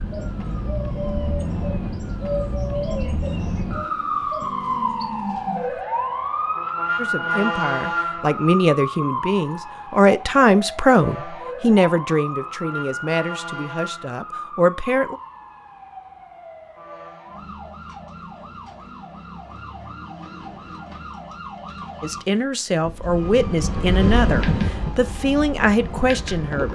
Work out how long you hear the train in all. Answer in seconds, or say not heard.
4 s.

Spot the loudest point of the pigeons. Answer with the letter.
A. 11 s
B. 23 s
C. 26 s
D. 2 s
D.